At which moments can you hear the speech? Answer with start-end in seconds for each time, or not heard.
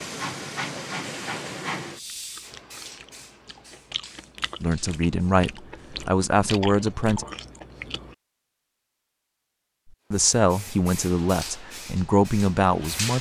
4.6-7.2, 10.1-13.1.